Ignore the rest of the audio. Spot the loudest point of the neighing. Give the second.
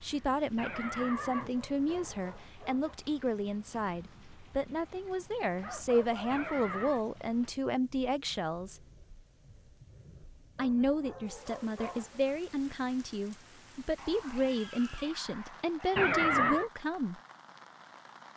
16 s.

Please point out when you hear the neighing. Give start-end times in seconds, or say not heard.
0.6-2.1, 6.3-7.0, 15.9-16.7.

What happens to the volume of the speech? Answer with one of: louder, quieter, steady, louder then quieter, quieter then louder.
steady.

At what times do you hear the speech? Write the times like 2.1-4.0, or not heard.
0.0-8.8, 10.6-17.2.